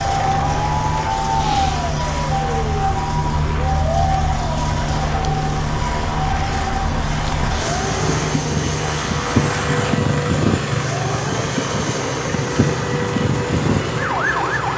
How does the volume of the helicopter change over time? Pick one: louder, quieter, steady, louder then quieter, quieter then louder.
steady.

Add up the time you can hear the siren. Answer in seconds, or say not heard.
15 s.